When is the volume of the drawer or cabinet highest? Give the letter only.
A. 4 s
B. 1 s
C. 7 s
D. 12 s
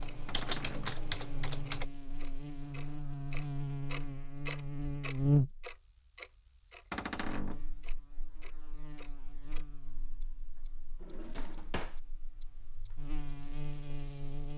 C.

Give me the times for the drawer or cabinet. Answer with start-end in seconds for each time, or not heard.
0.2-1.0, 6.9-7.7, 11.0-12.0.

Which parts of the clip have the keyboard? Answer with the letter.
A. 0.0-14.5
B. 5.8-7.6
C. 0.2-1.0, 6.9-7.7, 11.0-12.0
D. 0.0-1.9
D.